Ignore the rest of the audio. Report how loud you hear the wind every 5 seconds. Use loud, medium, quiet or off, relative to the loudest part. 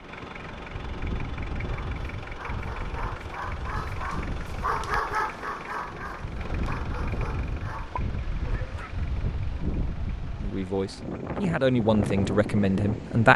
medium, loud, loud.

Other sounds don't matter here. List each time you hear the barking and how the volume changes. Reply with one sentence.
You can hear the barking from 1.6 to 9.1 s, getting louder then quieter.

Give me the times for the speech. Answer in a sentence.
You can hear the speech from 10.3 to 13.3 s.